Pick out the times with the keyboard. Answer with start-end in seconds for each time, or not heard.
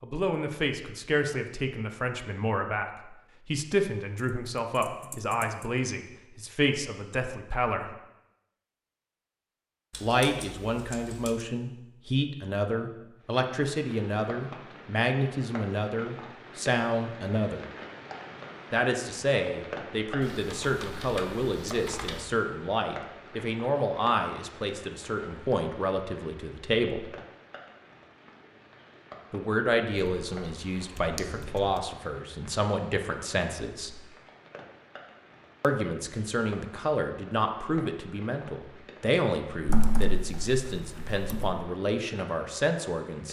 4.2-5.7, 9.9-11.4, 20.2-22.2, 30.9-31.8, 39.6-41.5.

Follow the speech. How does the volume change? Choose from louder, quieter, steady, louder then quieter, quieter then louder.
steady.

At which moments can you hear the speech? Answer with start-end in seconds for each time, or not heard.
0.0-7.9, 10.0-17.6, 18.7-27.1, 29.3-34.0, 35.6-43.2.